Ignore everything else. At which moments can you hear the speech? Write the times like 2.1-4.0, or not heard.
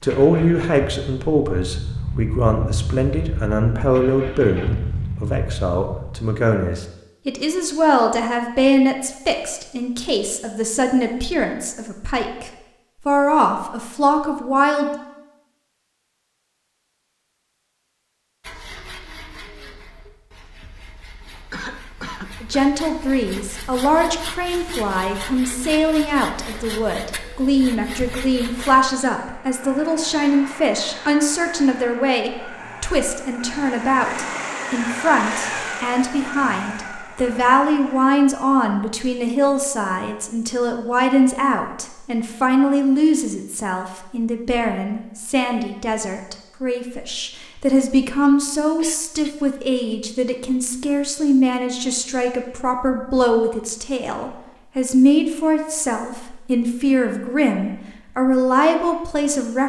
0.0-14.9, 22.4-59.6.